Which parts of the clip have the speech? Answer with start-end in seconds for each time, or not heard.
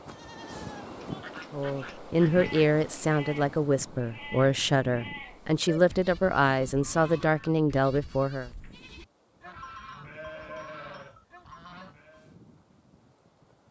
1.5-8.5.